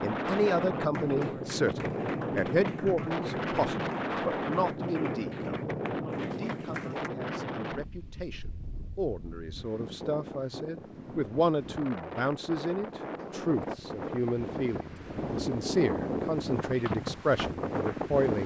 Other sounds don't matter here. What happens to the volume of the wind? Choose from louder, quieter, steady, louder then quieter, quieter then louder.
quieter then louder.